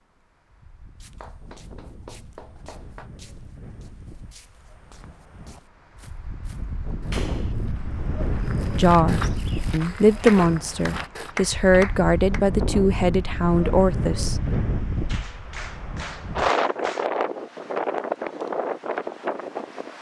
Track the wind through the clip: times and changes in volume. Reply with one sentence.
You can hear the wind from 0.0 to 19.9 s, getting louder.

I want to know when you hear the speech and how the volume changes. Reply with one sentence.
The speech can be heard from 8.7 to 14.4 s, at a steady volume.